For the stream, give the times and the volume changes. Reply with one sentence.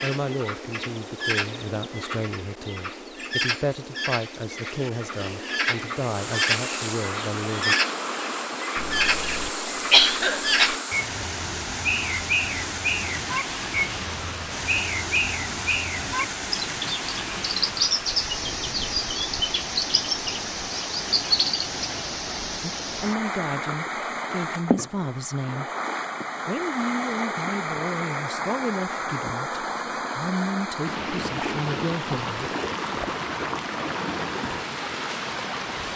The stream can be heard from 5.9 to 35.9 s, at a steady volume.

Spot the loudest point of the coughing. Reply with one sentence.
The loudest moment of the coughing is at 10 seconds.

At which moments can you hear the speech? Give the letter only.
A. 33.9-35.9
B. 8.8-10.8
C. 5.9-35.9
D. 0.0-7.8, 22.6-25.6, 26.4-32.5
D.